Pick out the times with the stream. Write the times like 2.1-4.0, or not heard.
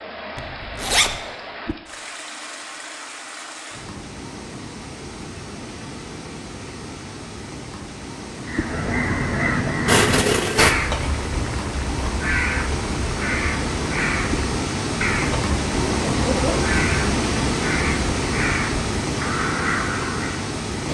0.0-20.8.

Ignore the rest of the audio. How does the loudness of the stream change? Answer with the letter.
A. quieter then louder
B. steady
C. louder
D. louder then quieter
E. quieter
C.